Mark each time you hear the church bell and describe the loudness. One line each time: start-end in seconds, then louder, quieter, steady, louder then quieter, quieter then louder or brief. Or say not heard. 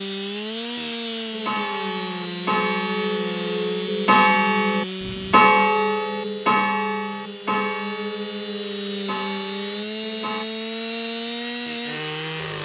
1.3-10.4 louder then quieter.